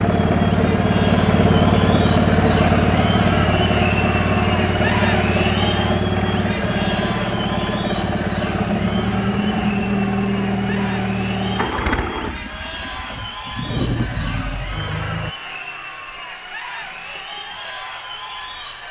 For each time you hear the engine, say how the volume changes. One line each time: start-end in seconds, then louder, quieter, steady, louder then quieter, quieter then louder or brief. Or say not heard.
0.0-15.3 quieter.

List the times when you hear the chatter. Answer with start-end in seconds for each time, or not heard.
0.2-18.8.